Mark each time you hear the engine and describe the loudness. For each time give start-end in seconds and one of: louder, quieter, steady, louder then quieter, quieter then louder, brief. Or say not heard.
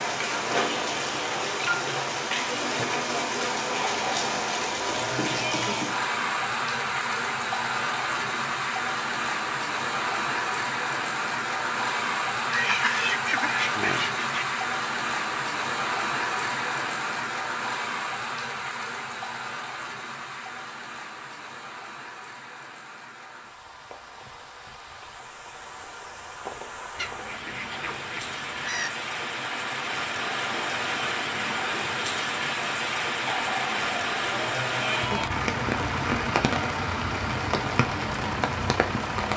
35.0-39.3 steady.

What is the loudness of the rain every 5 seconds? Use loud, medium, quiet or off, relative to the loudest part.
loud, loud, loud, loud, quiet, medium, loud, loud.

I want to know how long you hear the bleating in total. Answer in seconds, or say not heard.
4 s.